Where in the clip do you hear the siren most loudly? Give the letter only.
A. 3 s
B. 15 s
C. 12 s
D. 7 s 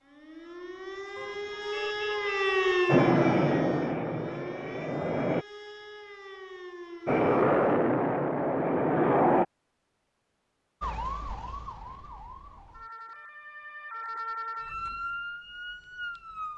A.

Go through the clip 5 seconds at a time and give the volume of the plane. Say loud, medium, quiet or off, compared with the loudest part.
loud, loud, off, off.